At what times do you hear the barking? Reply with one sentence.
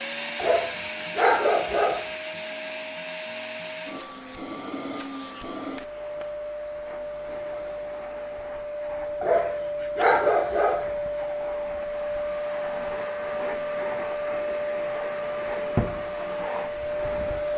You can hear the barking from 0.3 to 2.1 s and from 9.2 to 10.9 s.